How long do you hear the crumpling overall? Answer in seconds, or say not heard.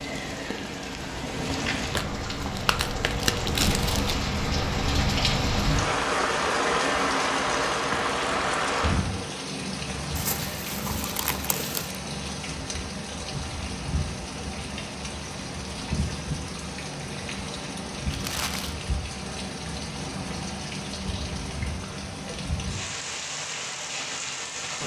5 s.